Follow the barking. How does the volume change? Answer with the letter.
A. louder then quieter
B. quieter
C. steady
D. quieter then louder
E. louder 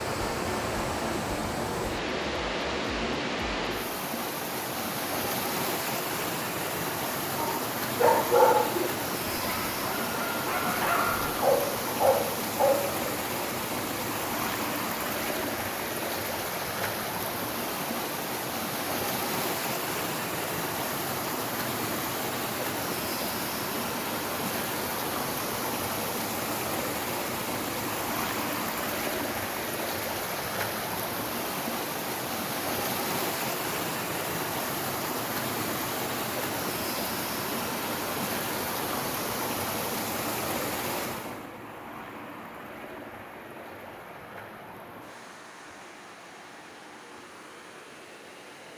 D.